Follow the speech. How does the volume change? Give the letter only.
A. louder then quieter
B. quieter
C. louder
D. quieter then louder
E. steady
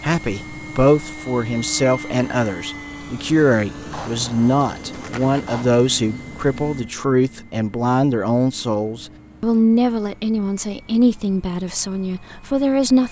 E.